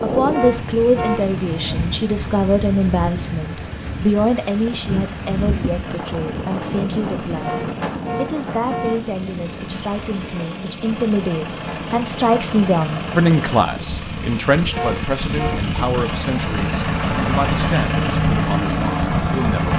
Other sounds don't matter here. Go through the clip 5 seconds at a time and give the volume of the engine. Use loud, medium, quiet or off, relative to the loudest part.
quiet, quiet, medium, loud.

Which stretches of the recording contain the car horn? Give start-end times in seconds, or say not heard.
0.3-1.3, 7.4-9.1, 14.7-15.7.